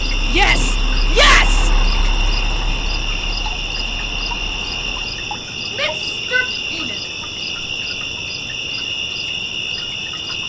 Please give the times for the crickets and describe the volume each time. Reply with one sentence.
The crickets can be heard from 0.0 to 10.4 s, at a steady volume.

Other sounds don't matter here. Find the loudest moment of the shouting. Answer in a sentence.
The loudest moment of the shouting is at 1 second.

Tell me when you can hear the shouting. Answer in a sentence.
You can hear the shouting from 0.3 to 1.6 s and from 5.7 to 7.0 s.